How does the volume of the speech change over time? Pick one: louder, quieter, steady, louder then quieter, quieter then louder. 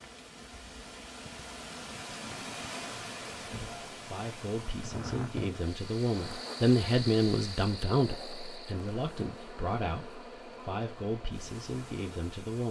louder then quieter.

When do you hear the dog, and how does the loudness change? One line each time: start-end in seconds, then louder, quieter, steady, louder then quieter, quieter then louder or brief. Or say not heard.
not heard.